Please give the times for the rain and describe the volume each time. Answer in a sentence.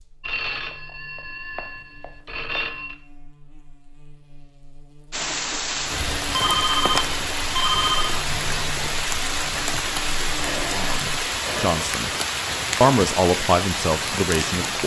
You can hear the rain from 5.1 to 14.8 s, at a steady volume.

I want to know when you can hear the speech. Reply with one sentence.
The speech can be heard from 10.7 to 12.1 s and from 12.8 to 14.8 s.